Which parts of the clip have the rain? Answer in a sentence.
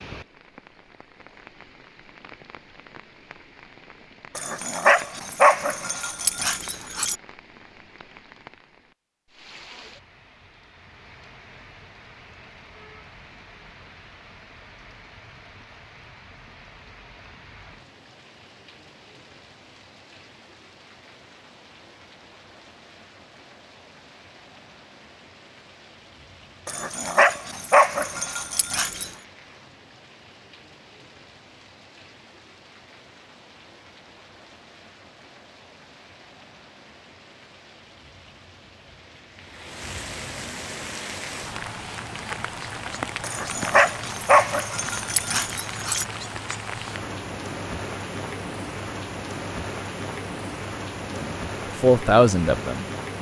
The rain can be heard from 0.0 to 53.1 s.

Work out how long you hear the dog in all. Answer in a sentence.
You can hear the dog for 8 seconds altogether.